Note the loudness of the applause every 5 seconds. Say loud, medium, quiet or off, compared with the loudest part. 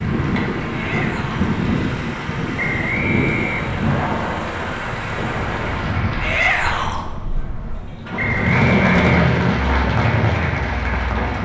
medium, loud, loud.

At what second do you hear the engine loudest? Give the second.
9 s.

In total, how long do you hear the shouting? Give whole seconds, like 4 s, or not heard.
2 s.